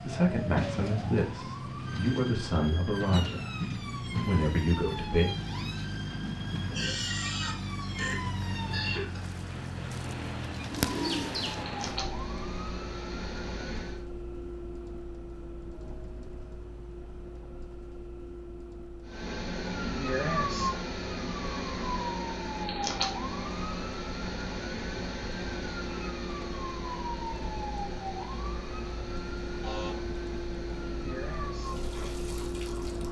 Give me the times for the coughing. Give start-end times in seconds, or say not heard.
6.7-9.2.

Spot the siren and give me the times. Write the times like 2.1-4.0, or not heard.
0.0-8.9, 10.8-14.0, 19.1-33.0.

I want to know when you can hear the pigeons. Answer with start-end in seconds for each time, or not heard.
10.4-11.7.